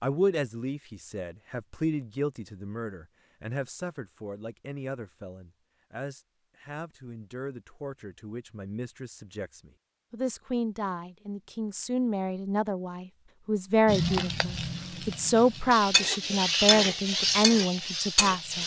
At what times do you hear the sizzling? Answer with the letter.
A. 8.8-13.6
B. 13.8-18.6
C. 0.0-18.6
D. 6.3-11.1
B.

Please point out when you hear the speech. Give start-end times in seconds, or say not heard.
0.0-18.6.